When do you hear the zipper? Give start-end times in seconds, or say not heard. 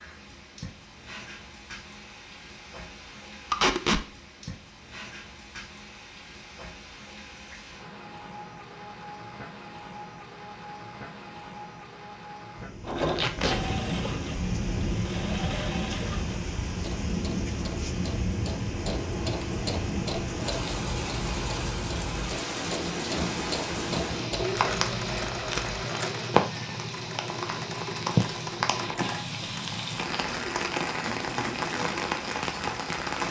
not heard.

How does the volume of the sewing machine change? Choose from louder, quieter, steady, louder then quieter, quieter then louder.
steady.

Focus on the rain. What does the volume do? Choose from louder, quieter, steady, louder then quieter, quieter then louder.
louder.